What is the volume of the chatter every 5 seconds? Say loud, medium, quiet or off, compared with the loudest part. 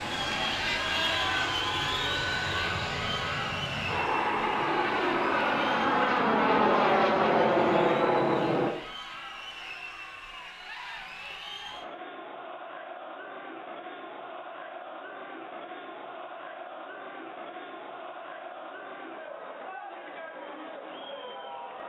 loud, medium, medium, medium, medium.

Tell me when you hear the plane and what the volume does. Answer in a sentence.
You can hear the plane from 0.0 to 8.8 s, getting louder.